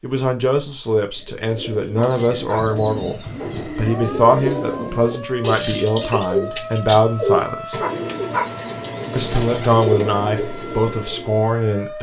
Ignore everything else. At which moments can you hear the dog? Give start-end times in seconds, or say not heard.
1.9-2.6, 7.8-8.5.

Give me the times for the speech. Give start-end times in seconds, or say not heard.
0.0-7.8, 9.2-11.9.